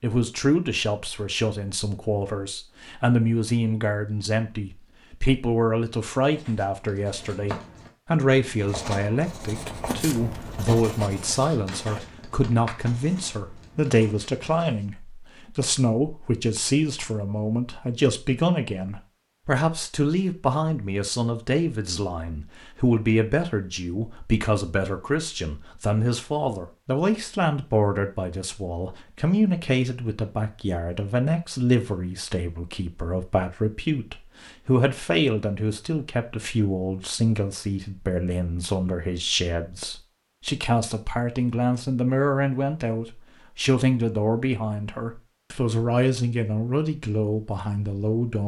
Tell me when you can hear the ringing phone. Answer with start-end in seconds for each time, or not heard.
not heard.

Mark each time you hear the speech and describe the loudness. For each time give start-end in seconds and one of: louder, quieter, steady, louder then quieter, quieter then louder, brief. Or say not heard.
0.0-48.4 steady.